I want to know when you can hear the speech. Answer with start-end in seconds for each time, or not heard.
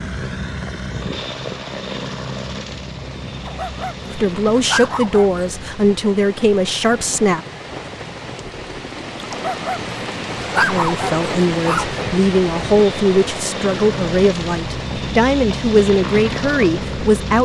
4.1-7.5, 10.7-17.4.